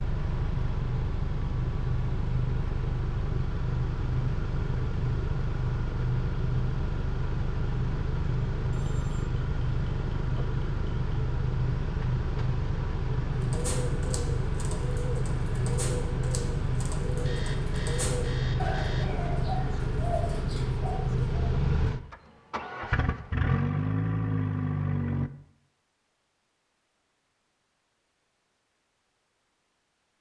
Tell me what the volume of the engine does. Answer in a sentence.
The volume of the engine stays about the same.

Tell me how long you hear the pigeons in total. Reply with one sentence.
The pigeons can be heard for 8 seconds in total.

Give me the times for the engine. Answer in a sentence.
You can hear the engine from 0.0 to 25.3 s.